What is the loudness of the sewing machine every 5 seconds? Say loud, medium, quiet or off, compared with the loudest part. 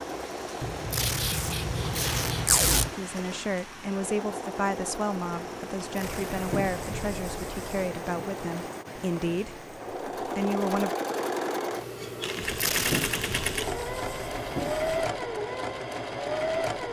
medium, medium, loud, loud.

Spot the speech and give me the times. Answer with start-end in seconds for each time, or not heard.
3.0-10.9.